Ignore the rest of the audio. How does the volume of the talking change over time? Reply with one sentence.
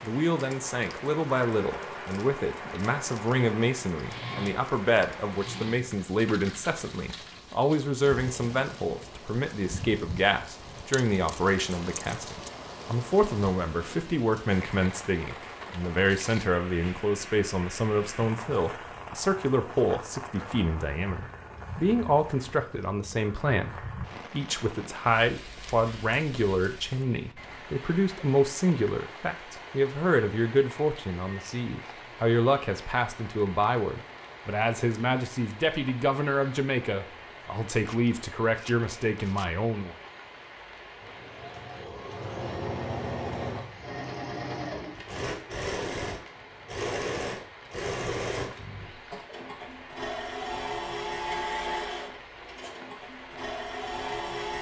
The volume of the talking stays about the same.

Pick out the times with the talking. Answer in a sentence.
The talking can be heard from 0.0 to 40.0 s.